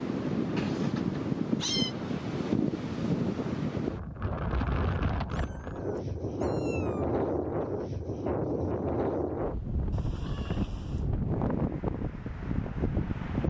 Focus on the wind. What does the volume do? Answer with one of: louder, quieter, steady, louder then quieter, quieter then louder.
steady.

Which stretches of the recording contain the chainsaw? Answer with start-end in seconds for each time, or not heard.
not heard.